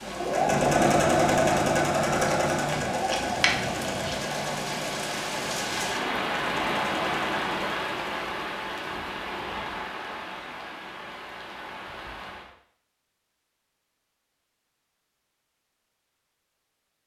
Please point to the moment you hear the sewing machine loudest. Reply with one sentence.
The volume of the sewing machine peaks at 1 second.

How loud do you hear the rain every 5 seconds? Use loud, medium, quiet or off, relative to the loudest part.
medium, loud, medium, off.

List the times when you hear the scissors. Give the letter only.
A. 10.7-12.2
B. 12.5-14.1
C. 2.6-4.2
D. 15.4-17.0
C.